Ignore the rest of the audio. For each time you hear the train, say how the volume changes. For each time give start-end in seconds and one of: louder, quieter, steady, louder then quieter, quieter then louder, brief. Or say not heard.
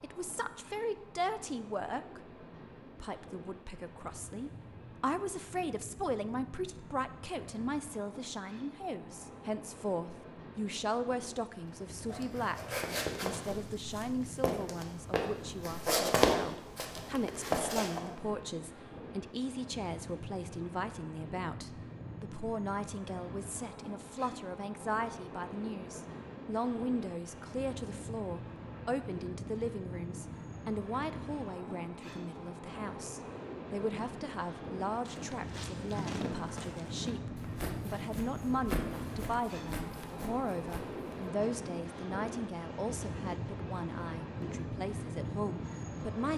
0.0-46.3 louder.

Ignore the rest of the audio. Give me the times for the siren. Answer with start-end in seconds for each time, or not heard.
not heard.